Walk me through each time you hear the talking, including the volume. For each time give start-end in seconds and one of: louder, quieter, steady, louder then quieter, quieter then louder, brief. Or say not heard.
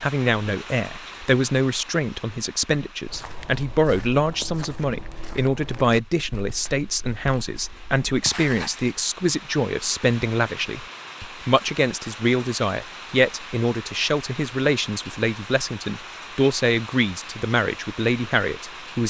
0.0-19.0 steady.